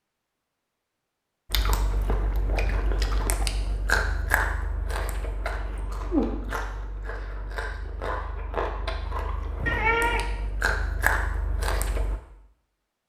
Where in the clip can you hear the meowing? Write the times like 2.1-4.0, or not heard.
9.7-10.3.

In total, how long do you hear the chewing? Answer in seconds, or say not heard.
11 s.